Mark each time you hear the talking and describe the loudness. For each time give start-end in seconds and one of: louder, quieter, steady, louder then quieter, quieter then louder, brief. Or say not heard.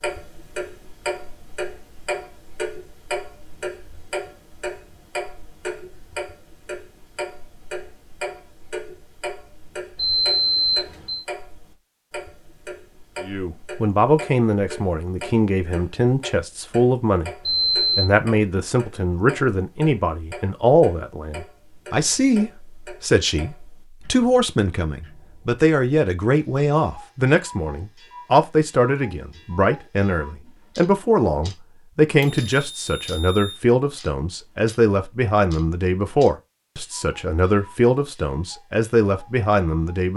13.2-40.1 steady.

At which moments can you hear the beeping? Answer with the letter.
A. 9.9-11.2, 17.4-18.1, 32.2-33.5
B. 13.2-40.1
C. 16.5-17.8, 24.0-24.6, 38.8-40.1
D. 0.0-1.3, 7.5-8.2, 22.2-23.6
A.